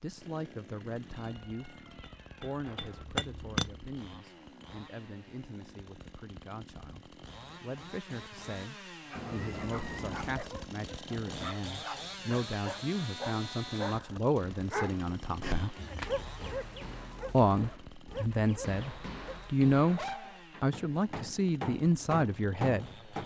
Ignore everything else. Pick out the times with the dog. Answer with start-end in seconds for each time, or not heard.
9.1-20.4.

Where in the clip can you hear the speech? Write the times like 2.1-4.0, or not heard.
0.0-1.8, 2.4-15.8, 17.3-22.9.